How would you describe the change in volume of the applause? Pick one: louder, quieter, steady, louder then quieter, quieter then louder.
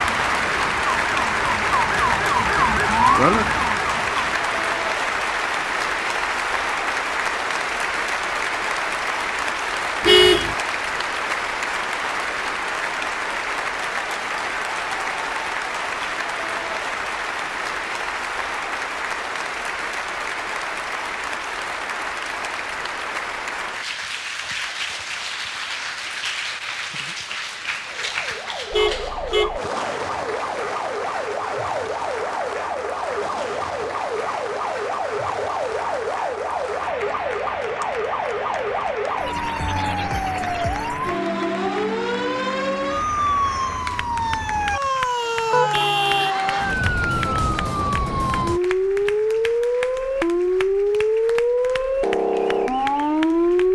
quieter.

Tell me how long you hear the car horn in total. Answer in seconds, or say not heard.
2 s.